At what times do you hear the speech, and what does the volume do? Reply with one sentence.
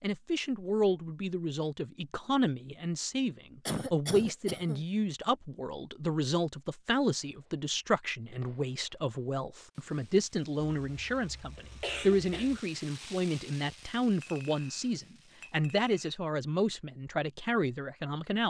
The speech can be heard from 0.0 to 18.4 s, at a steady volume.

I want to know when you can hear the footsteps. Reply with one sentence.
You can't hear the footsteps here.